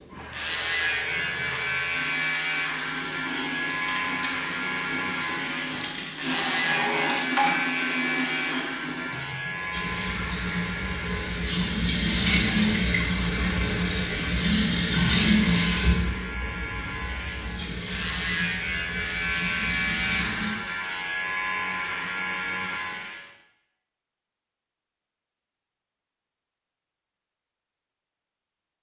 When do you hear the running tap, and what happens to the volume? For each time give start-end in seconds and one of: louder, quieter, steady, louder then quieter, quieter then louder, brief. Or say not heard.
0.0-20.6 louder then quieter.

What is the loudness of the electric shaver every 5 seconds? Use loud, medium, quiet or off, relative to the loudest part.
loud, loud, medium, loud, loud, off.